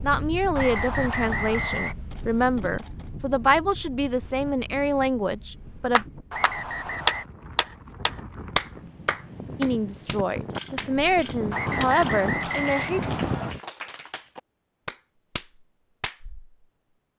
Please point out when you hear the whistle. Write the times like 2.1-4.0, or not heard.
0.6-1.9, 6.3-7.2, 11.5-13.5.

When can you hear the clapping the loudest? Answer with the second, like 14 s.
7 s.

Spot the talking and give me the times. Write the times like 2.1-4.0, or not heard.
0.0-6.0, 9.6-13.0.